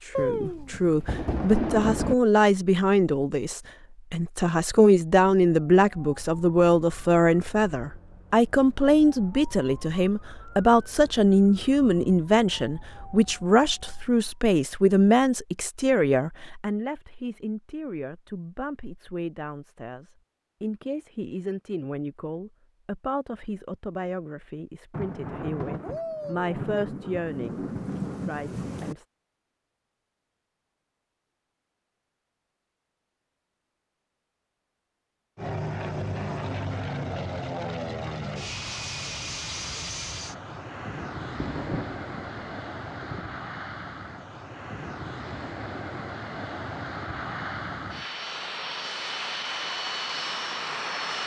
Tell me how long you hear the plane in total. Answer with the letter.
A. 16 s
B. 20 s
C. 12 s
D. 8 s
A.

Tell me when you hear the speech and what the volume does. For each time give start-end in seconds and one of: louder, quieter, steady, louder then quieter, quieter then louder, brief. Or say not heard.
0.1-29.1 quieter.